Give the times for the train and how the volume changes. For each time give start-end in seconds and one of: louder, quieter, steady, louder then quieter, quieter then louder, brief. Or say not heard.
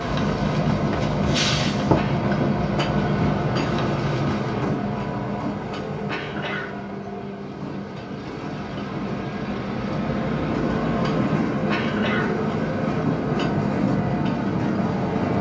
0.0-15.3 quieter then louder.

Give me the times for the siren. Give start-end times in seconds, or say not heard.
not heard.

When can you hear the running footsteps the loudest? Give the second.
2 s.